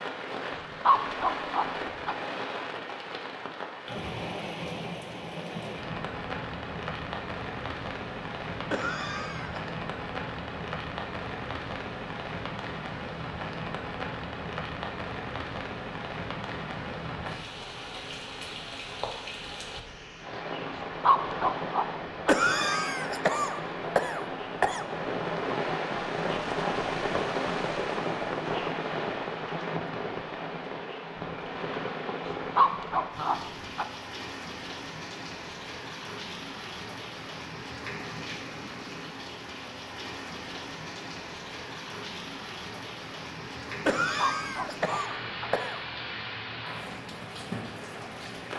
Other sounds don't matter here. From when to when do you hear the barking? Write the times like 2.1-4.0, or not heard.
0.6-2.1, 20.8-22.4, 32.2-33.9, 44.1-45.5.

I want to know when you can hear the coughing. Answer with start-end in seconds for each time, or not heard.
8.7-9.7, 22.2-24.9, 43.9-45.8.